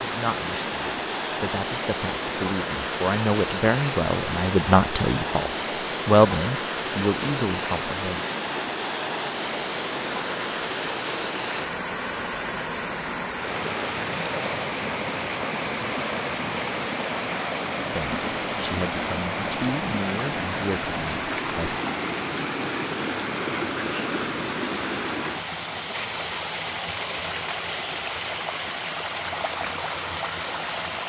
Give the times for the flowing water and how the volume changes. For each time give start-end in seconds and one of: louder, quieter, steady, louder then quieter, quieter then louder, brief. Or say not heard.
0.0-31.0 steady.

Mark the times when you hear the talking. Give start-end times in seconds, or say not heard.
0.0-8.2, 17.9-21.8.